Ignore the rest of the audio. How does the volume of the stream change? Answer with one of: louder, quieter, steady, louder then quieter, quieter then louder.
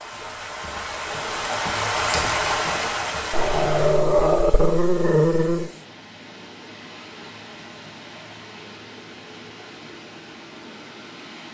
quieter.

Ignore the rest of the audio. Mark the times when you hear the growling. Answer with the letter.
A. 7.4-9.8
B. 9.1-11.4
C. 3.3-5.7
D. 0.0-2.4
C.